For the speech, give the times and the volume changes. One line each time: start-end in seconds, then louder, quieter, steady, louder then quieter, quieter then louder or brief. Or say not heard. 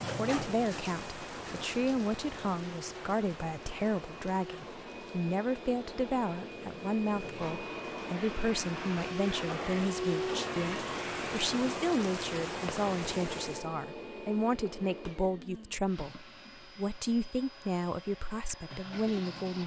0.0-19.6 steady.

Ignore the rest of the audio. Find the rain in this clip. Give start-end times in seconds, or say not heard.
0.0-13.7.